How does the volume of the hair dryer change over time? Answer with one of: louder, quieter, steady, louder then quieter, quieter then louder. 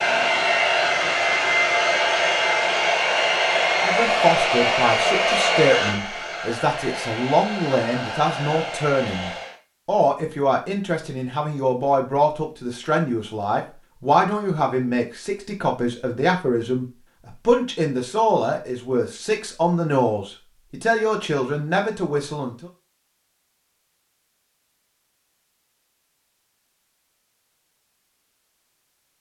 quieter.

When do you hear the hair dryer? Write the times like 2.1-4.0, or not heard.
0.0-9.6.